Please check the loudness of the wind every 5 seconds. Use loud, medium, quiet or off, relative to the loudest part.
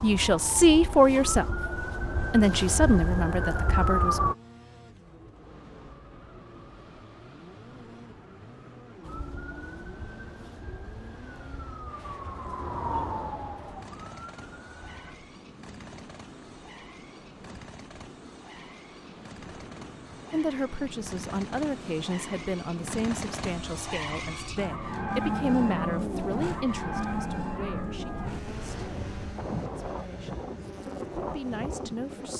off, quiet, quiet, medium, medium, loud, loud.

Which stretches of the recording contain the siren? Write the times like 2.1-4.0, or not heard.
0.0-4.3, 9.0-15.2.